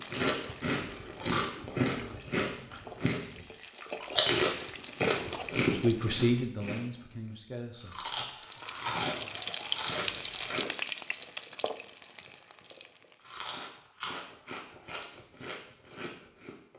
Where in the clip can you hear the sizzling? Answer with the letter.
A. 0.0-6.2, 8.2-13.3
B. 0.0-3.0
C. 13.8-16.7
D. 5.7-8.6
A.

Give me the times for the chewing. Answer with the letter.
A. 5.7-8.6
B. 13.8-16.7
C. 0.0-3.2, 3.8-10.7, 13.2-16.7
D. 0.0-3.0
C.